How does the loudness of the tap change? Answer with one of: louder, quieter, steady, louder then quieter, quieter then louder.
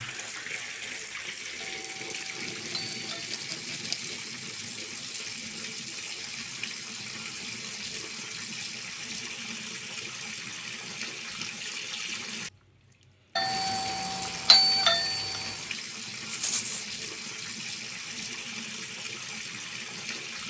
steady.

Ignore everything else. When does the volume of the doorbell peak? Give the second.
15 s.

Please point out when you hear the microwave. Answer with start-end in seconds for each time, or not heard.
not heard.